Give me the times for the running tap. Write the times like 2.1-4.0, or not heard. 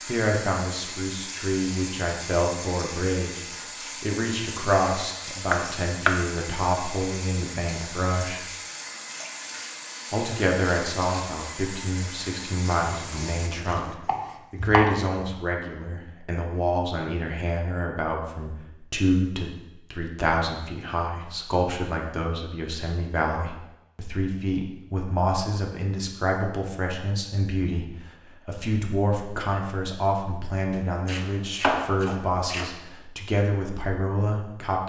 0.0-13.5.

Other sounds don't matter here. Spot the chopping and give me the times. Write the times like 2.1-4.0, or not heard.
5.5-6.2, 12.9-15.2, 30.7-32.7.